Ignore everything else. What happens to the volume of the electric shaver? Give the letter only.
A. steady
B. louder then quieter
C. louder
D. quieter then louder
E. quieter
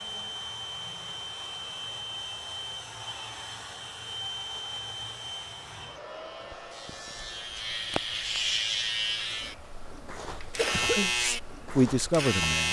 C.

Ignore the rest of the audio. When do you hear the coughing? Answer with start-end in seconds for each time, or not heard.
10.2-11.1.